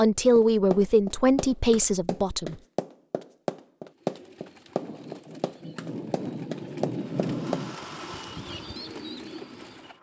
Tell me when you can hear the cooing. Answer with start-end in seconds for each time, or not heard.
3.9-9.9.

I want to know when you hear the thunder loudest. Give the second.
7 s.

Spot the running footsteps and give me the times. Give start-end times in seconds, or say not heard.
0.3-7.7.